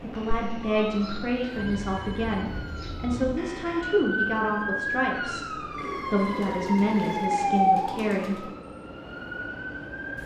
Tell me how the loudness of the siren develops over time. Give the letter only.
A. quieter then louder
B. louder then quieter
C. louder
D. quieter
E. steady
B.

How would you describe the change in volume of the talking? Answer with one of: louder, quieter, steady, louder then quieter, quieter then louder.
steady.